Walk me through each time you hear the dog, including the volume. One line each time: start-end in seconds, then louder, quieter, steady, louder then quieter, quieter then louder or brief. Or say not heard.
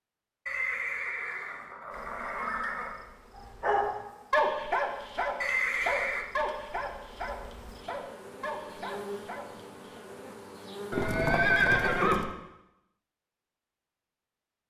3.4-10.0 quieter.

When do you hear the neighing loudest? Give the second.
12 s.